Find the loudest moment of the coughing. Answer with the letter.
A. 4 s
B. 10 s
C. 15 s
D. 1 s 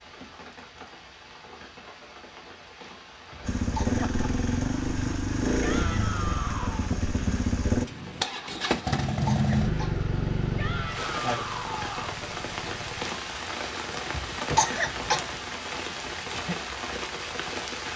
C.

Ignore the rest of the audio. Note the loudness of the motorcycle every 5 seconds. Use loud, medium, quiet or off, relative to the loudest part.
loud, loud, medium, off.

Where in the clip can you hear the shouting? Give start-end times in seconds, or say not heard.
5.6-6.9, 10.6-12.2.